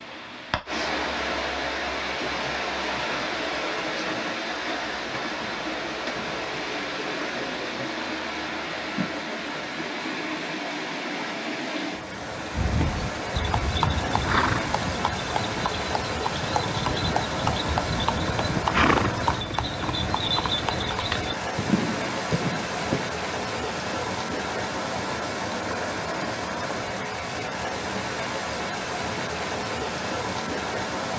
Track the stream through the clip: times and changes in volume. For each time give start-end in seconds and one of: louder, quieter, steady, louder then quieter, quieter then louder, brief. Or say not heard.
0.0-31.1 steady.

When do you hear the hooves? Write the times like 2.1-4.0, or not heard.
12.5-23.1.